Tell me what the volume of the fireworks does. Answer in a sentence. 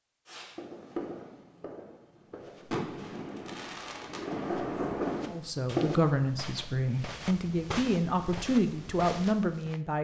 The loudness of the fireworks goes down, then up.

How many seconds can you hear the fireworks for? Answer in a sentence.
You can hear the fireworks for 6 seconds altogether.